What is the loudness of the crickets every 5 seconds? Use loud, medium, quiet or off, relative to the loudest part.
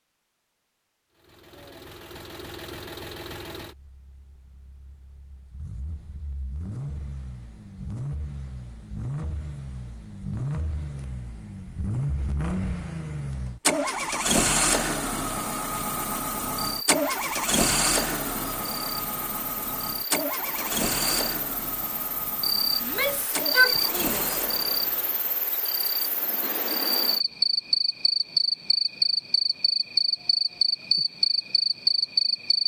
off, off, off, quiet, medium, loud, loud.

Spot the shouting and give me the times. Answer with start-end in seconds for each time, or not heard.
22.8-24.2.